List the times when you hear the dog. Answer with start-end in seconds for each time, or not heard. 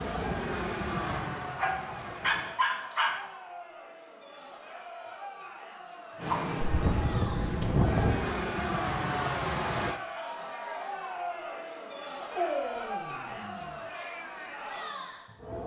1.6-3.2, 6.2-8.2, 12.3-13.8.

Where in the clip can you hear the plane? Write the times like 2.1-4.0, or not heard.
0.0-2.6, 6.2-10.0.